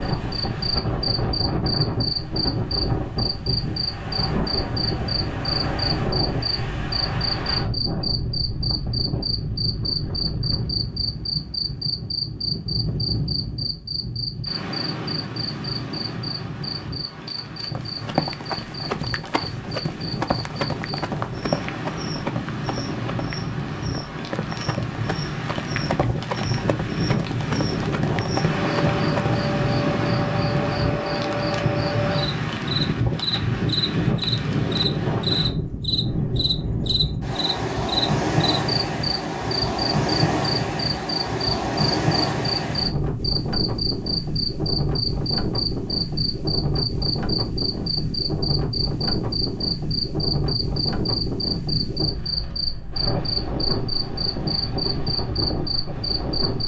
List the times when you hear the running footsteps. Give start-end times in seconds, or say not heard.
17.8-29.4.